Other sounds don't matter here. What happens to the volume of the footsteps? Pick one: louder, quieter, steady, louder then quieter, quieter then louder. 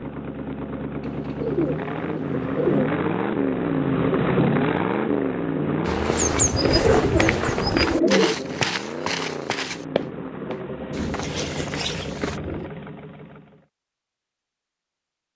quieter.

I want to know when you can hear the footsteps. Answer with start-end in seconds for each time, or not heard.
5.8-12.4.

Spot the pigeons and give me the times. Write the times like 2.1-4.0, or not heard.
1.0-3.0, 6.5-8.3, 10.9-12.7.